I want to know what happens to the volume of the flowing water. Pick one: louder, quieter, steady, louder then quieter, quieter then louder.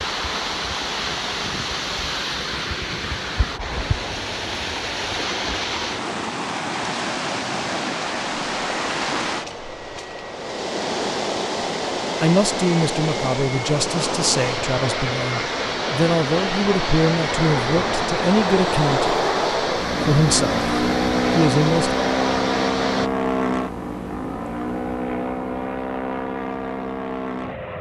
steady.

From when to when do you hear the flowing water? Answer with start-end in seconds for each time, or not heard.
0.0-23.1.